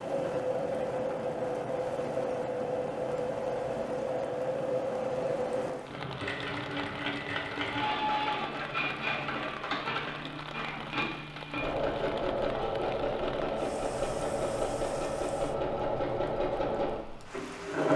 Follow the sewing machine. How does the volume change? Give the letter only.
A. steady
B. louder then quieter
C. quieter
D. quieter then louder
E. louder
A.